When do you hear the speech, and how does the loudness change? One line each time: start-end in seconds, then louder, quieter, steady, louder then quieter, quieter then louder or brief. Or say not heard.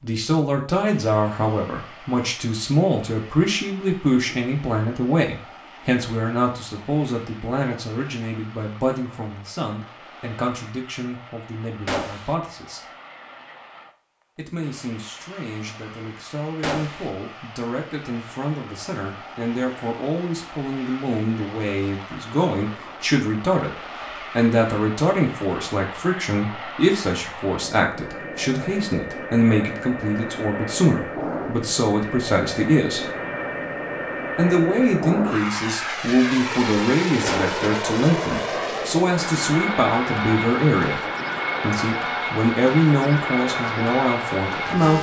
0.0-12.9 quieter
14.3-33.1 louder
34.4-44.9 steady.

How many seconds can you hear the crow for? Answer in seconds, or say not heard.
not heard.